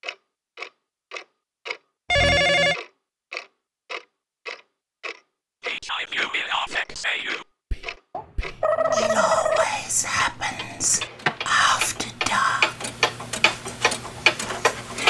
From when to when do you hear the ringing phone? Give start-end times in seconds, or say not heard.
2.1-2.8, 8.1-9.7.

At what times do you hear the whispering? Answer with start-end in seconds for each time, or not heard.
5.7-12.8.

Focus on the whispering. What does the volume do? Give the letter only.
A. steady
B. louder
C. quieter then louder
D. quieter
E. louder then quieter
C.